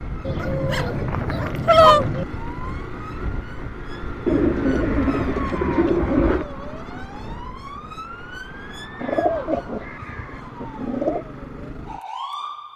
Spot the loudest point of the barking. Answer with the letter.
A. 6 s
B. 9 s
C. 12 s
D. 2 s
D.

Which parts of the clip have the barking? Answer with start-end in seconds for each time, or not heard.
0.4-2.0.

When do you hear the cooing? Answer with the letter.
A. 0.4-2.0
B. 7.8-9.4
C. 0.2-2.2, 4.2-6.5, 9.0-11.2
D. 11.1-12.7
C.